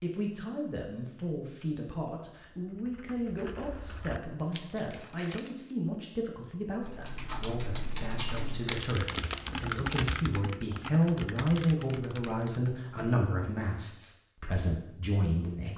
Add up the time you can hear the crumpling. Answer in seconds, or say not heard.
3 s.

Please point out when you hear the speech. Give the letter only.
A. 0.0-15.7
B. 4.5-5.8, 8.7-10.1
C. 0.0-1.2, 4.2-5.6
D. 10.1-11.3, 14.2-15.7
A.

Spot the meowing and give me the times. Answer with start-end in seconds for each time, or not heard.
not heard.